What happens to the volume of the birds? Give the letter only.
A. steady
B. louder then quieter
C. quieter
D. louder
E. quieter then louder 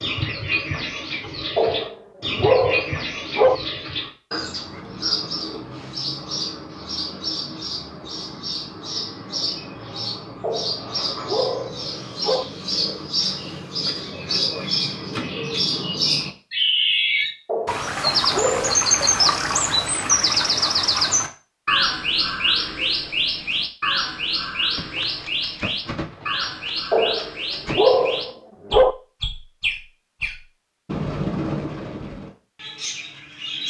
B.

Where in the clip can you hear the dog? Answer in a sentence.
The dog can be heard from 1.6 to 3.5 s, from 10.4 to 12.4 s, from 17.4 to 18.9 s and from 26.9 to 28.9 s.